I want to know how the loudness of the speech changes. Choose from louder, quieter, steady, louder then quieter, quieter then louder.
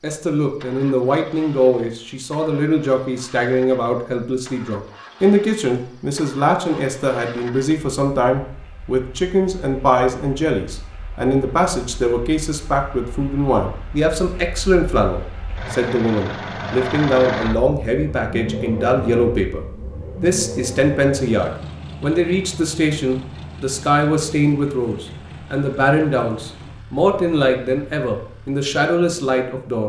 steady.